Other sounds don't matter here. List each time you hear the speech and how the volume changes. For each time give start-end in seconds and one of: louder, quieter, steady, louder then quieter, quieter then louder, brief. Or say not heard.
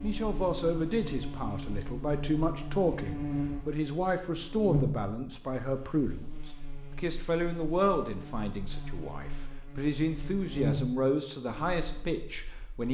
0.0-12.8 steady.